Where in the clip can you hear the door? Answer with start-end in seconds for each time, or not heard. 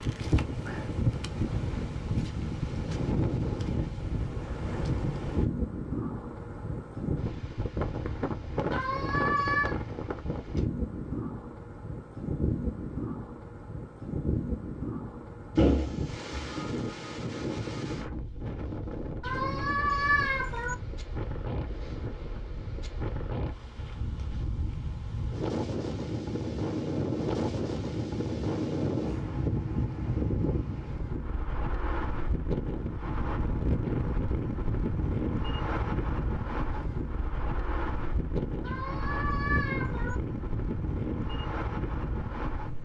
15.6-16.6.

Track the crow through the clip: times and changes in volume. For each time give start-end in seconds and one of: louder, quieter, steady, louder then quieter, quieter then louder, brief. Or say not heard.
not heard.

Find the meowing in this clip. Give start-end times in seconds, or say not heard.
8.7-9.8, 19.2-20.8, 38.6-40.1.